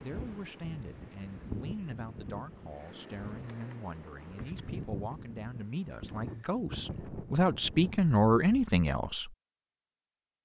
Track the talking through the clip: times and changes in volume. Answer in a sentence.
The talking can be heard from 0.0 to 9.3 s, getting louder.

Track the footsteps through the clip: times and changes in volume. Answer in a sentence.
The footsteps can't be heard in this clip.